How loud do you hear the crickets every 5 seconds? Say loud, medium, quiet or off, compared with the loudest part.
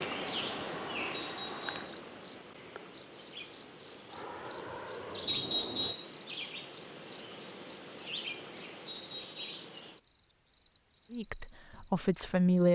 loud, loud, medium.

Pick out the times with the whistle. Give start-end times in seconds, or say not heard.
1.1-1.9, 5.2-6.1, 8.8-9.7.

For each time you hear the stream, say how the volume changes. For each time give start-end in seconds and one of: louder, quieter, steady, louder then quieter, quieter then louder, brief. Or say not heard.
not heard.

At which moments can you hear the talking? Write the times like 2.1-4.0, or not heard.
11.1-12.7.